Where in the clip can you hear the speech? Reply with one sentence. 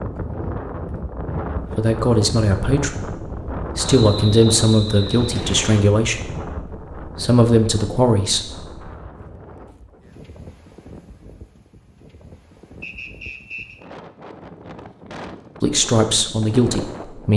You can hear the speech from 1.8 to 8.9 s and from 15.6 to 17.3 s.